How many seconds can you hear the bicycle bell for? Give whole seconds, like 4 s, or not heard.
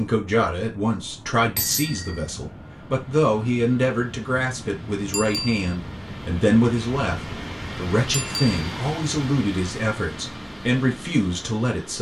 2 s.